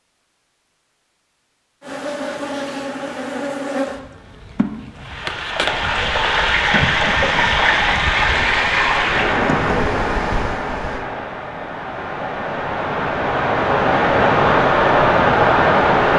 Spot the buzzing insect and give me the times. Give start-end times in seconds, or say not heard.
1.8-11.0.